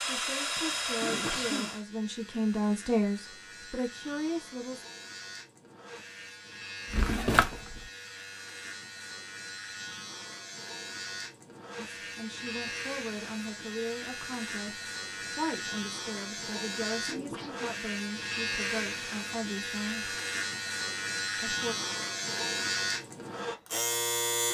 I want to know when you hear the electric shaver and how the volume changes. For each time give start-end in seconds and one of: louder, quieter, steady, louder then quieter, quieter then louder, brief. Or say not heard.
0.0-24.5 louder.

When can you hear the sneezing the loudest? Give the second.
1 s.